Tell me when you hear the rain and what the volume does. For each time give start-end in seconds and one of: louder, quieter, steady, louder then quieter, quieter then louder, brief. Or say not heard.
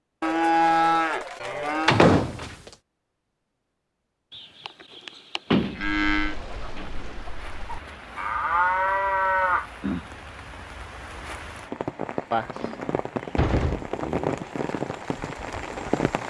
6.3-16.2 louder.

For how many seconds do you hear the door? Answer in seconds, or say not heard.
4 s.